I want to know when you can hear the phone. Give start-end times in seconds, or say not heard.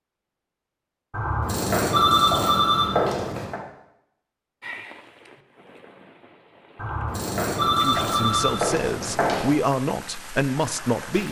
1.1-3.6, 6.8-9.6.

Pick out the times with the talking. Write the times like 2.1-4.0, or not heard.
7.7-11.2.